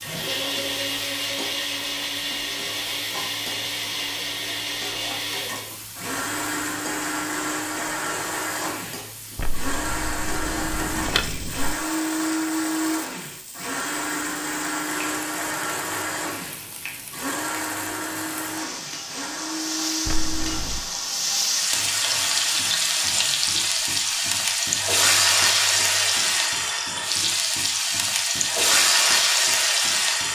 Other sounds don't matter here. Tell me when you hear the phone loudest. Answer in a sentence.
The volume of the phone peaks at 11 seconds.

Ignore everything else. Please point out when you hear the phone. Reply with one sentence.
The phone can be heard from 9.3 to 11.8 s and from 20.1 to 20.9 s.